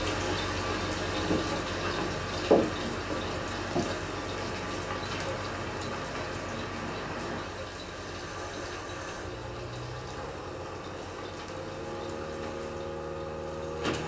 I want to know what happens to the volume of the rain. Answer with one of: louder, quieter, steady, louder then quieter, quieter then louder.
quieter.